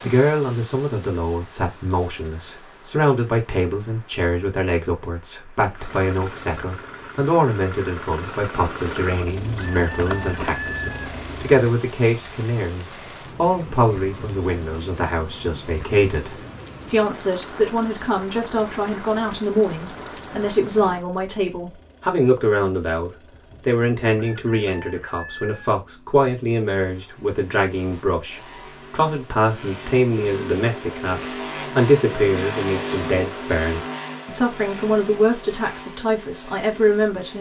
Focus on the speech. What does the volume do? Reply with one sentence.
The volume of the speech stays about the same.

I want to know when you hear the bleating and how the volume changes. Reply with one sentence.
You can't hear the bleating here.